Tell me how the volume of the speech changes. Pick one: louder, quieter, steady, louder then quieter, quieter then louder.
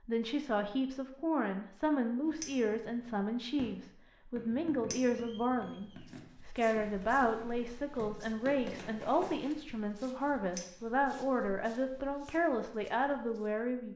steady.